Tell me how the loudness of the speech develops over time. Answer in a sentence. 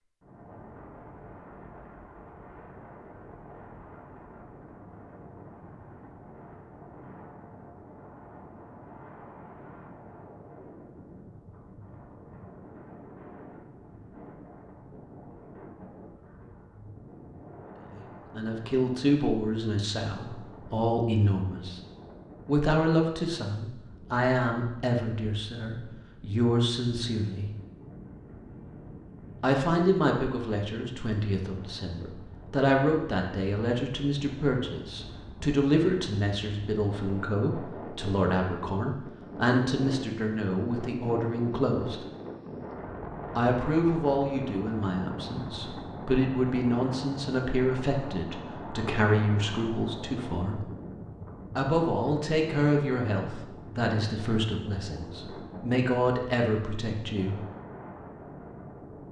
The volume of the speech stays about the same.